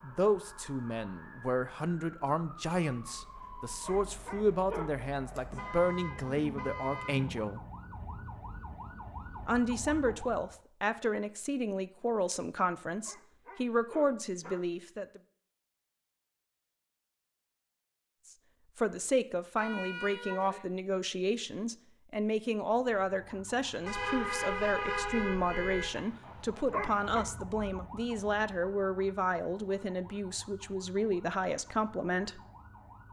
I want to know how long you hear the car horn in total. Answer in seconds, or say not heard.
5 s.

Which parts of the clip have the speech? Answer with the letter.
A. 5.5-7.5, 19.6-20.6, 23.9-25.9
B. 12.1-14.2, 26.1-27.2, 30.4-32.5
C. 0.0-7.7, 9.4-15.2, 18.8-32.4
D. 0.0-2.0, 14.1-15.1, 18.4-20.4
C.